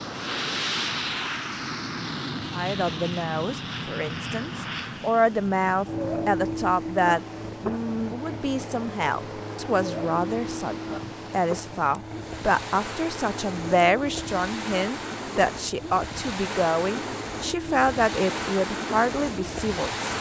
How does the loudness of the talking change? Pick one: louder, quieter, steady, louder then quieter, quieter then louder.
steady.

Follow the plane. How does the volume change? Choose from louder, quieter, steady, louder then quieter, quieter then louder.
quieter.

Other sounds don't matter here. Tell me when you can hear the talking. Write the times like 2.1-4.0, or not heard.
2.5-20.1.